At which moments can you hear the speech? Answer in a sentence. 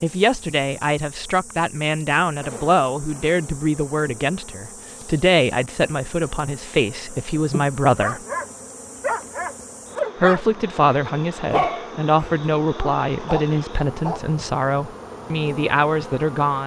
The speech can be heard from 0.0 to 8.2 s and from 10.2 to 16.6 s.